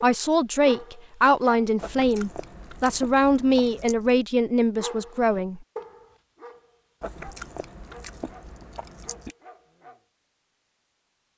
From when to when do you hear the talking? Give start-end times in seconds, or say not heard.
0.0-5.6.